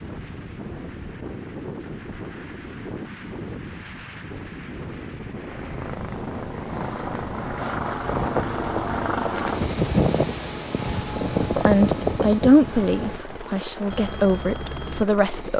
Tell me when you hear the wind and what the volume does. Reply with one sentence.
You can hear the wind from 0.0 to 13.4 s, getting louder.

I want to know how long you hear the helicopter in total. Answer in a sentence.
You can hear the helicopter for 10 seconds altogether.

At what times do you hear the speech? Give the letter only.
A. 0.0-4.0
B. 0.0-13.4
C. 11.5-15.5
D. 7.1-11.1
C.